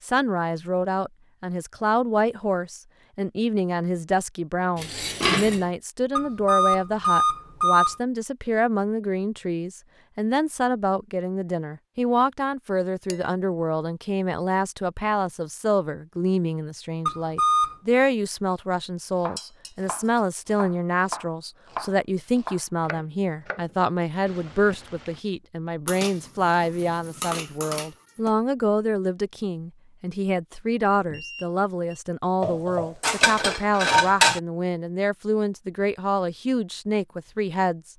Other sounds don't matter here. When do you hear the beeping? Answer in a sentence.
You can hear the beeping from 6.2 to 8.0 s, from 17.1 to 17.8 s and from 30.9 to 32.0 s.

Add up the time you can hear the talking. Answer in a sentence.
The talking can be heard for 38 seconds in total.